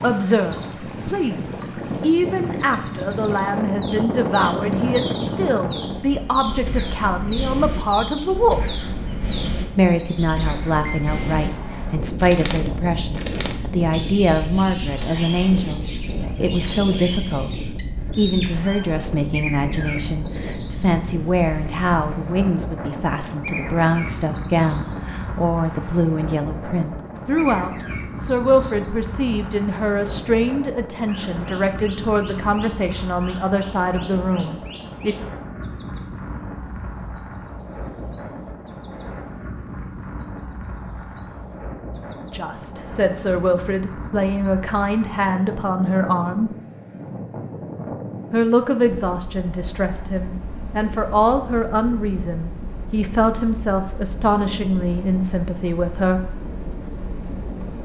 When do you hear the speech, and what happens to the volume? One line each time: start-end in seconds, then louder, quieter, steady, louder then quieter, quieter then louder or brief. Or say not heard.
0.0-8.6 steady
9.8-35.1 steady
42.3-46.5 steady
48.3-56.2 steady.